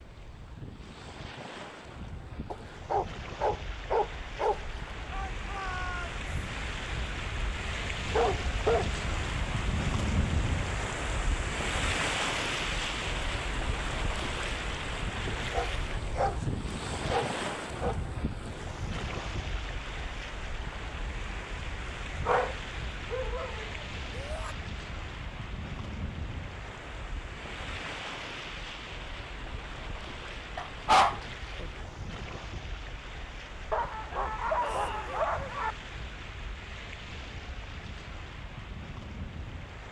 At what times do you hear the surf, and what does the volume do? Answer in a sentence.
You can hear the surf from 0.0 to 39.8 s, getting louder then quieter.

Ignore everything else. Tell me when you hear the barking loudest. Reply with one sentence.
The loudest moment of the barking is at 31 seconds.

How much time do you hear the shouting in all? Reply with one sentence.
The shouting can be heard for 2 seconds in total.